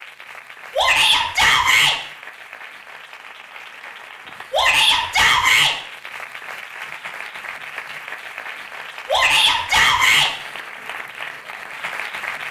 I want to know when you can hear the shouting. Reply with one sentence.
You can hear the shouting from 0.8 to 1.9 s, from 4.5 to 5.8 s and from 9.1 to 10.3 s.